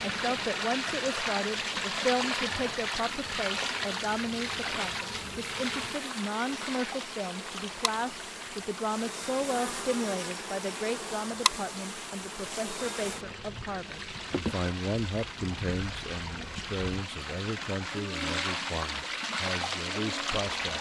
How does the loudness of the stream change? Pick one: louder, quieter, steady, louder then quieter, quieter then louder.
quieter then louder.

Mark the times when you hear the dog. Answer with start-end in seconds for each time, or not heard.
not heard.